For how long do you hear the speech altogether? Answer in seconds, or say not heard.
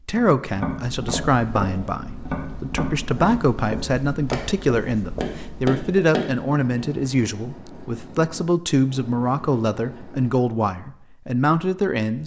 12 s.